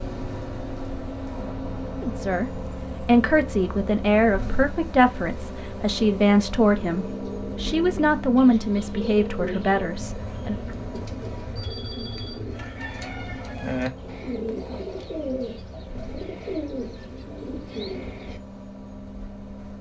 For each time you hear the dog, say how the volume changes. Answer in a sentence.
You can't hear the dog here.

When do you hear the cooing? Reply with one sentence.
You can hear the cooing from 6.8 to 18.4 s.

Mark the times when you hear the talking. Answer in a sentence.
The talking can be heard from 2.0 to 10.6 s.